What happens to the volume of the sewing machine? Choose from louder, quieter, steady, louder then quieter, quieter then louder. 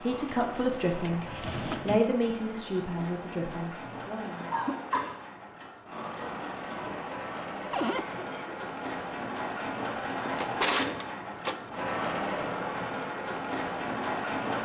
louder.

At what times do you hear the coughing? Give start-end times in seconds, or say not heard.
3.9-5.2, 7.8-8.6.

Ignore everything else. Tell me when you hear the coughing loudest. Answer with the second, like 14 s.
5 s.